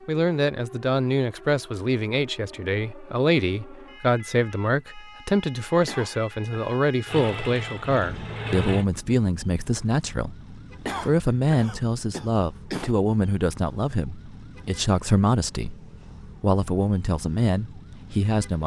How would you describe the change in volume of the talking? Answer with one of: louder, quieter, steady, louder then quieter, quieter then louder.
steady.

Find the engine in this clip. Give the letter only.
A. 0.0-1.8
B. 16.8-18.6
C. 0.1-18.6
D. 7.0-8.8
D.